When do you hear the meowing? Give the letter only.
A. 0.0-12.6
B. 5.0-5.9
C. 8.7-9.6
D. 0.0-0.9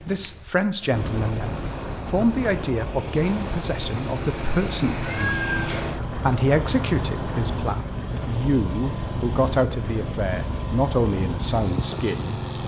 B.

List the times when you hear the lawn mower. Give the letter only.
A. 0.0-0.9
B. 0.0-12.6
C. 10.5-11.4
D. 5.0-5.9
B.